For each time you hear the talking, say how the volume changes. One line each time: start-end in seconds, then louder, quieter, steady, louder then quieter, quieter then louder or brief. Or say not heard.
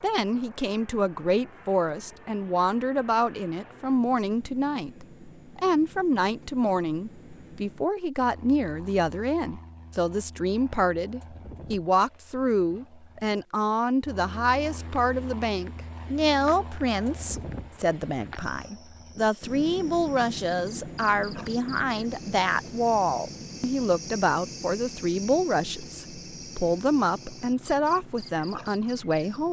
0.0-29.4 steady.